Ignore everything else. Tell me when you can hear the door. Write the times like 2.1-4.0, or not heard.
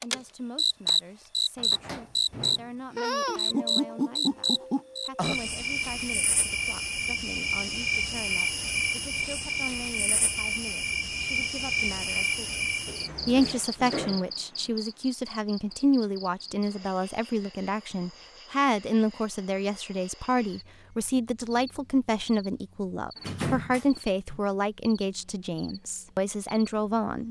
1.6-3.2, 12.8-14.2, 23.1-24.4.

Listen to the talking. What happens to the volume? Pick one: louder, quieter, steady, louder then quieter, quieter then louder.
louder.